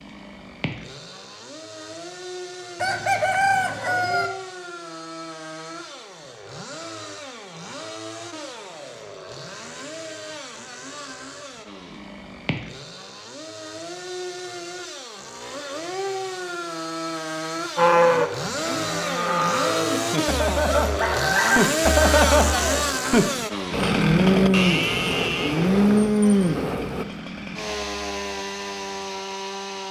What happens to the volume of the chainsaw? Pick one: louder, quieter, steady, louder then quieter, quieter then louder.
louder.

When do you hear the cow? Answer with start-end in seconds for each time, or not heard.
17.8-27.1.